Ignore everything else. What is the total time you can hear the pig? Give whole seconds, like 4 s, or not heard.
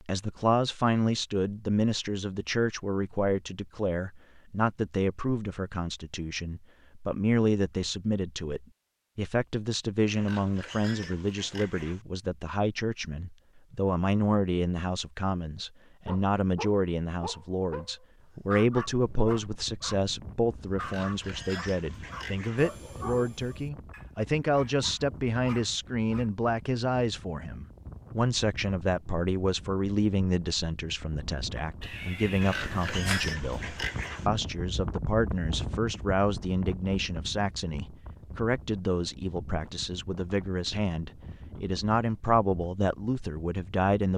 6 s.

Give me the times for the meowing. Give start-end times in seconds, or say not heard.
31.8-33.4.